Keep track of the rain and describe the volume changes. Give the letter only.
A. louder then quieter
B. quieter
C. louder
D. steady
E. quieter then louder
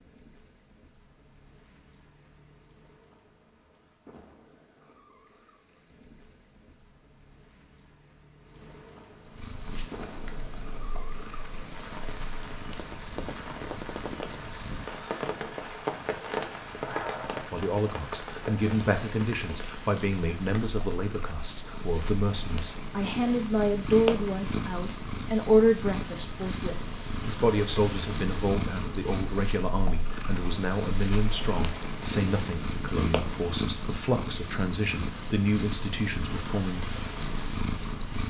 C.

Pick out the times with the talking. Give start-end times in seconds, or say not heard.
17.5-36.8.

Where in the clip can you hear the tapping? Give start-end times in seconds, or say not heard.
12.7-14.3.